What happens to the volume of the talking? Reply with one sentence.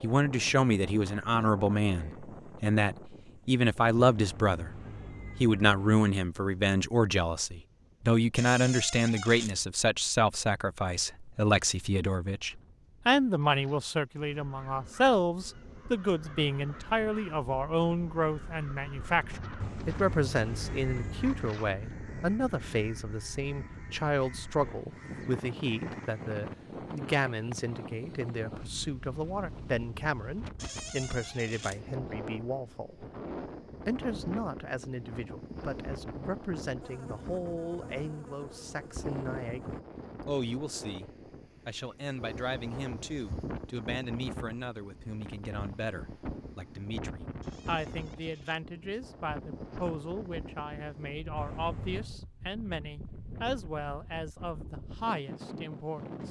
The volume of the talking goes down.